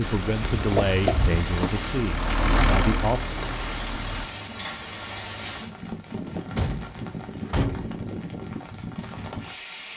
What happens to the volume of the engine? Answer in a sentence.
The volume of the engine goes up, then down.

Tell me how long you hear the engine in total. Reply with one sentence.
You can hear the engine for 4 seconds altogether.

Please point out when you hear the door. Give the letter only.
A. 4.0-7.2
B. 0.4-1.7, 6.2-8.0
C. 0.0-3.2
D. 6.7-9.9
B.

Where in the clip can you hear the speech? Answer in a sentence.
You can hear the speech from 0.0 to 3.2 s.